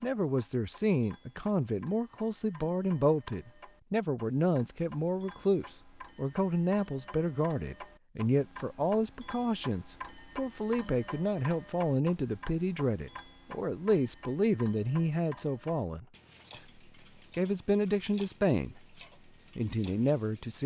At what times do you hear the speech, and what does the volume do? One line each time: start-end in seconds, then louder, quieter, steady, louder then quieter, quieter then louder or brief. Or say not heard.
0.0-16.6 steady
17.4-18.8 brief
19.6-20.6 brief.